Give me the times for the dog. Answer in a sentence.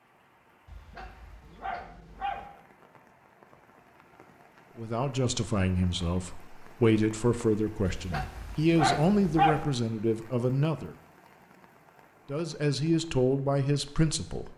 The dog can be heard from 0.7 to 2.5 s and from 7.8 to 9.7 s.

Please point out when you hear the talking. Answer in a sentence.
You can hear the talking from 4.8 to 10.9 s and from 12.2 to 14.5 s.